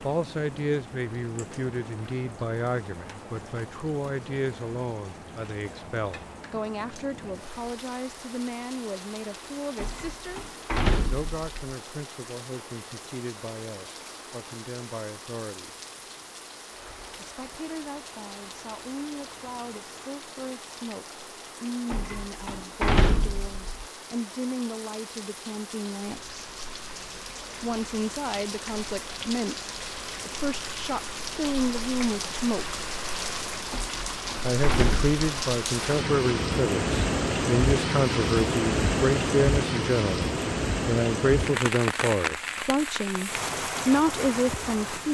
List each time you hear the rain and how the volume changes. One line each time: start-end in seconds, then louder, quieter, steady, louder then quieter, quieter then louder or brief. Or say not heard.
0.0-45.0 louder.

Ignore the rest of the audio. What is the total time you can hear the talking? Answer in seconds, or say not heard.
40 s.